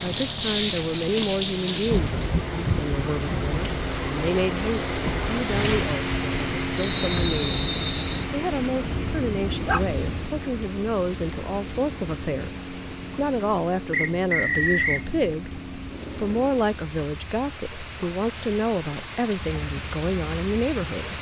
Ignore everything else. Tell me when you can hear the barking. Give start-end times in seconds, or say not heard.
8.8-10.1.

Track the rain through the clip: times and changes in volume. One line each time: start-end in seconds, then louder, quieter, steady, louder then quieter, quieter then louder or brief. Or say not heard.
0.0-21.1 quieter then louder.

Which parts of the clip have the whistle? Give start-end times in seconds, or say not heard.
6.8-8.2, 13.9-15.1.